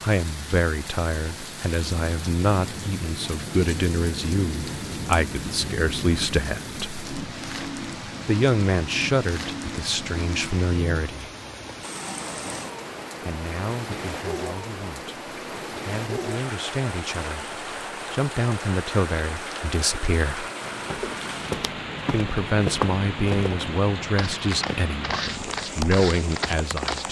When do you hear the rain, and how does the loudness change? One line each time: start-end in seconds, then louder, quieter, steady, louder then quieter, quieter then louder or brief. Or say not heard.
0.0-27.0 steady.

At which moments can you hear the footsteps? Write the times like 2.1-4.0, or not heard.
20.6-27.0.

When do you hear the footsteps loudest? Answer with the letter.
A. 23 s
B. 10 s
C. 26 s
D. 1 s
A.